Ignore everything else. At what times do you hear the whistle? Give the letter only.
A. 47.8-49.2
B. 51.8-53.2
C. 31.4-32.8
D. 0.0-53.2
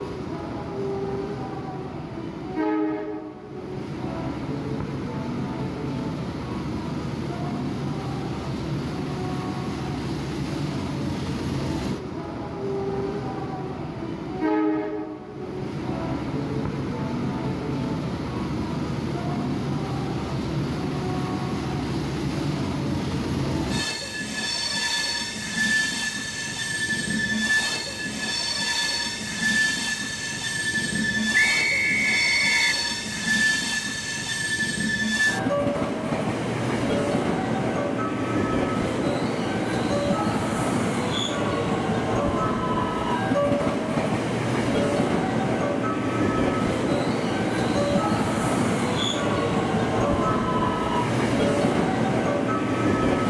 C.